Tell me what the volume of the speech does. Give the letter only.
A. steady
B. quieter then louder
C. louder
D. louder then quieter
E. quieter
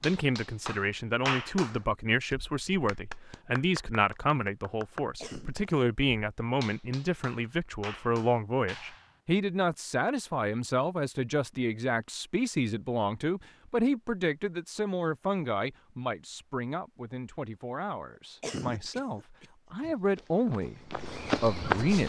A.